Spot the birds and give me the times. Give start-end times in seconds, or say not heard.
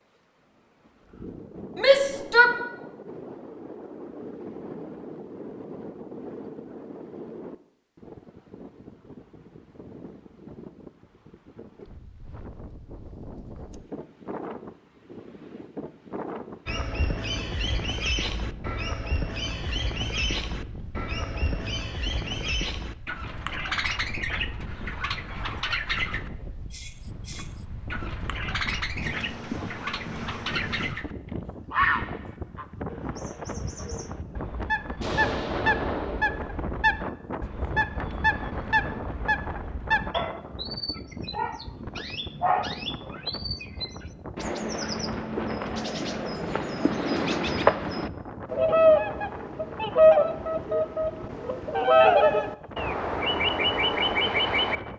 16.6-31.1, 31.7-54.8.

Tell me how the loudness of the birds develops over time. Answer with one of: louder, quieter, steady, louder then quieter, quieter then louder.
louder.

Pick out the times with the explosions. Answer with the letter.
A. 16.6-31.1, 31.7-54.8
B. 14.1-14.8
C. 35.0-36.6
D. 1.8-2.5
C.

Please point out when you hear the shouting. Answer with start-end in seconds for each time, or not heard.
1.8-2.5.